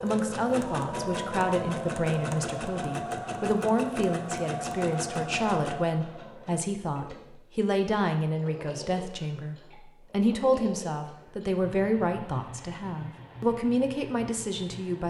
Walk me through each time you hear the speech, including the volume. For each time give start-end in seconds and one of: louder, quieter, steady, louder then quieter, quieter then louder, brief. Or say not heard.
0.0-15.0 steady.